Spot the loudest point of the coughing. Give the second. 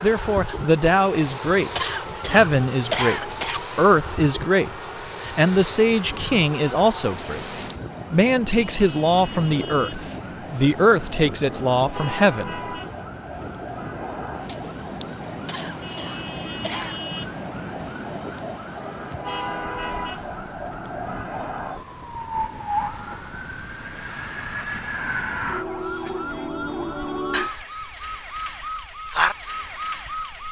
3 s.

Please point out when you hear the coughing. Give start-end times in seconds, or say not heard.
1.8-3.6, 15.4-17.0.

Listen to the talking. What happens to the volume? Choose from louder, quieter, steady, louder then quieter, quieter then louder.
steady.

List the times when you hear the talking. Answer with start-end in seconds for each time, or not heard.
0.0-7.4, 8.1-12.6.